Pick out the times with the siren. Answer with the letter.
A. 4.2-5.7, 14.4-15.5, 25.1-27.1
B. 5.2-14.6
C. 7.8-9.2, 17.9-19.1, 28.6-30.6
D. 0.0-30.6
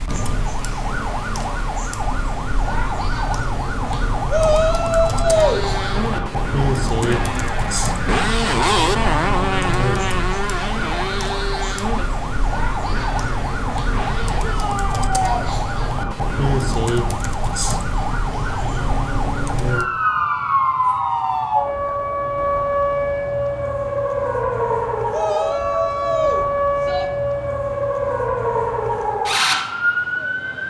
D.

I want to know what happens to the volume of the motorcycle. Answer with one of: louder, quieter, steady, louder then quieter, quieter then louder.
louder then quieter.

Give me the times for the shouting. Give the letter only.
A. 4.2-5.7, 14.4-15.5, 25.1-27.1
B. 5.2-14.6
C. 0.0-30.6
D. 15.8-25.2
A.